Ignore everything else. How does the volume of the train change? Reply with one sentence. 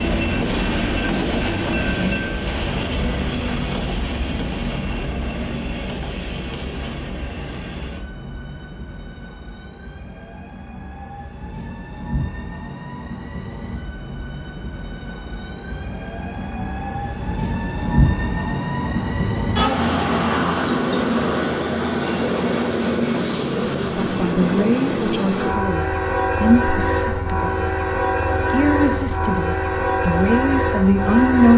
The volume of the train goes down, then up.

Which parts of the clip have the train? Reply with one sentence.
The train can be heard from 0.0 to 31.5 s.